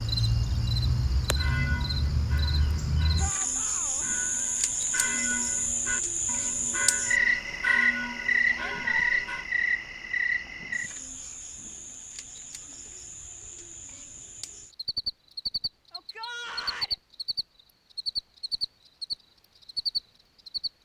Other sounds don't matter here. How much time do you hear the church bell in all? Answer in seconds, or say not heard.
8 s.